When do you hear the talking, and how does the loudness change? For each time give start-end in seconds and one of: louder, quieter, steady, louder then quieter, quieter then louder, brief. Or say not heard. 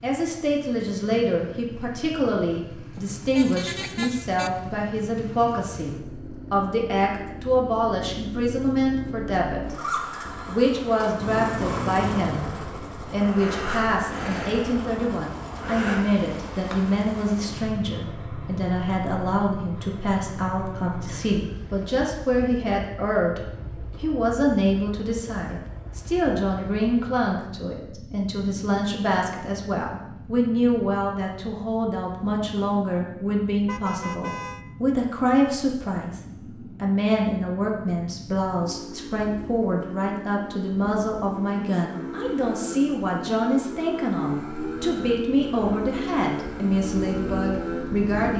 0.0-48.3 steady.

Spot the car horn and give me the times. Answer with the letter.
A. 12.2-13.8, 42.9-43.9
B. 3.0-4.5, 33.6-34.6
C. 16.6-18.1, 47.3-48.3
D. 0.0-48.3
B.